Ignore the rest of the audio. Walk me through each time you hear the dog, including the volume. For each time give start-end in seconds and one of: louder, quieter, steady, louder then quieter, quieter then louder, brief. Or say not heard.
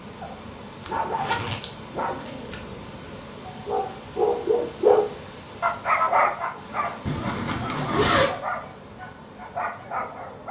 0.2-10.4 louder then quieter.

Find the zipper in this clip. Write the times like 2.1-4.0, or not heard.
0.8-2.5, 7.0-8.3.